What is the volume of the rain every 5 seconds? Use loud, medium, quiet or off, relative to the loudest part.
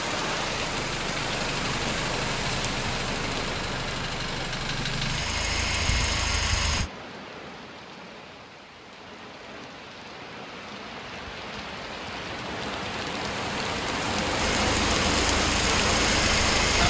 medium, quiet, medium, loud.